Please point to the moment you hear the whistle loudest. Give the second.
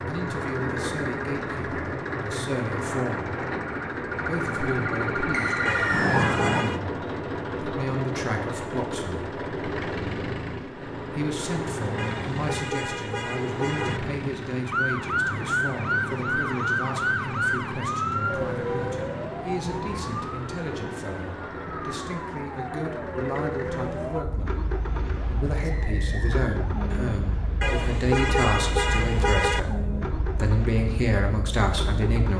6 s.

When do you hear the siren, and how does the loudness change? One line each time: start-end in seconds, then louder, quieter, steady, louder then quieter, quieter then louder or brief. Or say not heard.
0.0-6.7 louder
14.7-32.3 quieter.